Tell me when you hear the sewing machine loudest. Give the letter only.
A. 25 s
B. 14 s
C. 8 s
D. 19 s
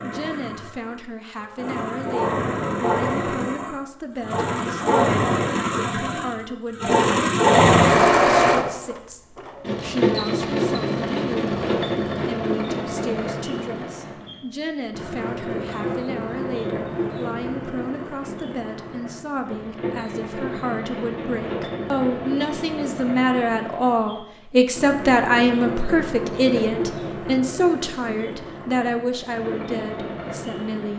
C.